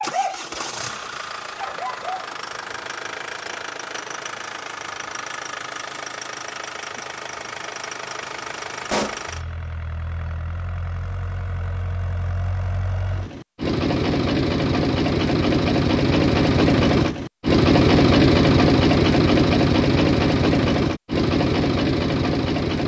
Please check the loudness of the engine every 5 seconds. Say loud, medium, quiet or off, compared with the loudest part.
quiet, quiet, medium, loud, loud.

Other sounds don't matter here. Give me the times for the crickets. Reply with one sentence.
You can't hear the crickets here.